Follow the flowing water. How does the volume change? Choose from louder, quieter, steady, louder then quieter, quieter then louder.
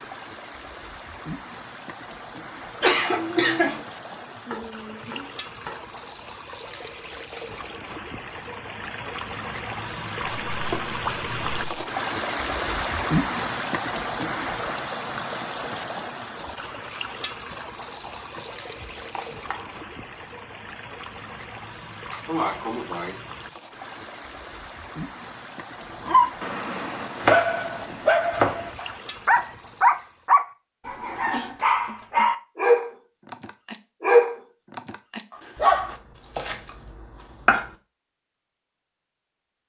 louder then quieter.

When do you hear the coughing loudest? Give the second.
3 s.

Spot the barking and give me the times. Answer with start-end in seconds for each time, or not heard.
26.1-36.0.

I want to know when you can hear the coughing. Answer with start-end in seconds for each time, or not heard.
2.8-3.8, 22.1-23.1, 31.1-31.6.